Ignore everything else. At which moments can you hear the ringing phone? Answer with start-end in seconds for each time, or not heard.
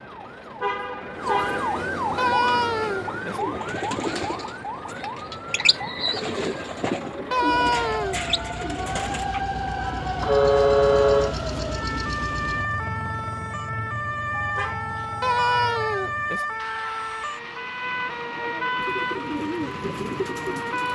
2.1-3.4, 7.3-8.2, 15.2-16.4.